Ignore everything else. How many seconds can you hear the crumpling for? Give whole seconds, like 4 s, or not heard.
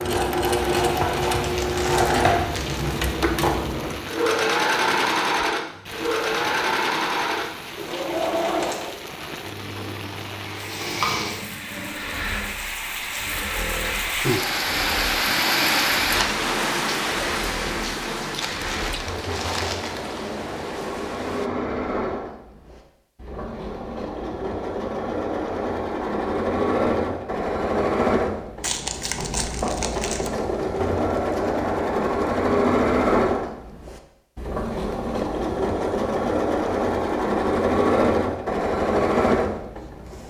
5 s.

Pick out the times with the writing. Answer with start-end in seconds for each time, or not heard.
not heard.